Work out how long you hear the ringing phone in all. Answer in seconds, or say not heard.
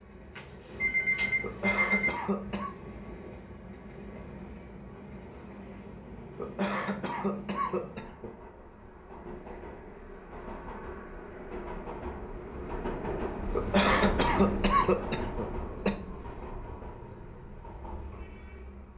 2 s.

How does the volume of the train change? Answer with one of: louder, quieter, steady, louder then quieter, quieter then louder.
louder then quieter.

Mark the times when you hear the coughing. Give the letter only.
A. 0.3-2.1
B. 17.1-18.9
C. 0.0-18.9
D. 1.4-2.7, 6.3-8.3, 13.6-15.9
D.